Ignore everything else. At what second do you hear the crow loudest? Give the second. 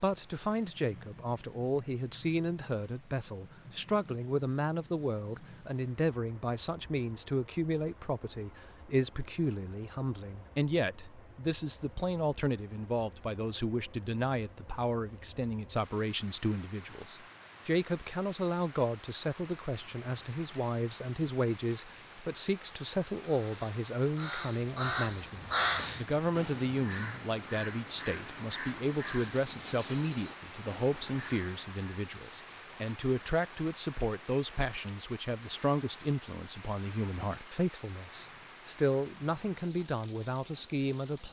26 s.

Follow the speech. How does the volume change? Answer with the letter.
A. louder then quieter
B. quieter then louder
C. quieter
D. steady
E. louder
D.